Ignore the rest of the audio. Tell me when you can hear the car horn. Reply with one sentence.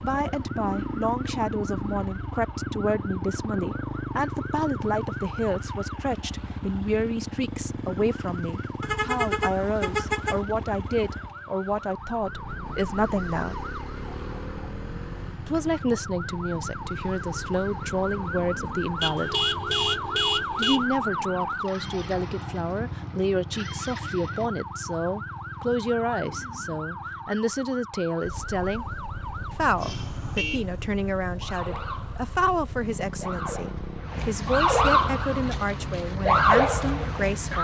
The car horn can be heard from 8.8 to 10.4 s, from 19.0 to 20.9 s and from 29.8 to 30.8 s.